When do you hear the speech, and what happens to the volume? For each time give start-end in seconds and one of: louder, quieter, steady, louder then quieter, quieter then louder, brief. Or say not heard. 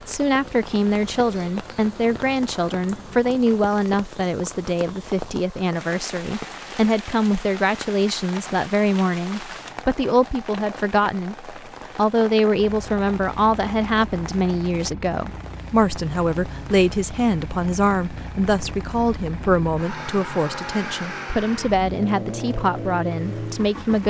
0.1-24.0 steady.